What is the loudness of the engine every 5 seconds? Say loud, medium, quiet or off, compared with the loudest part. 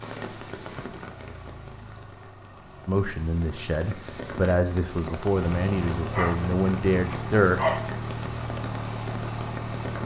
quiet, loud.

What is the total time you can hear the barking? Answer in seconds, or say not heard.
2 s.